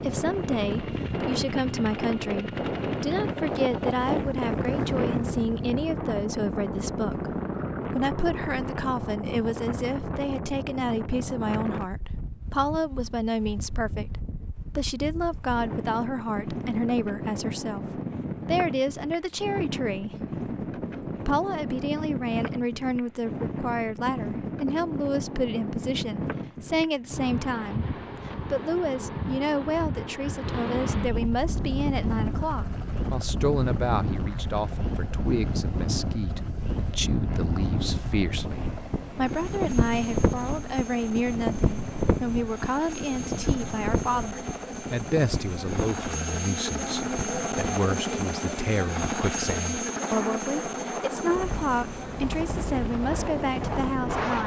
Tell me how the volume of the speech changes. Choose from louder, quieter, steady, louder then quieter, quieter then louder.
steady.